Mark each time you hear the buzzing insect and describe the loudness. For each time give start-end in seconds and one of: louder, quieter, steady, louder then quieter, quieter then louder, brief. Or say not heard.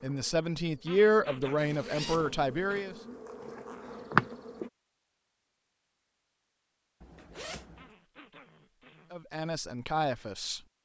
0.0-4.7 louder.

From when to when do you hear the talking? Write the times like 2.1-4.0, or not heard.
0.0-3.0, 9.1-10.6.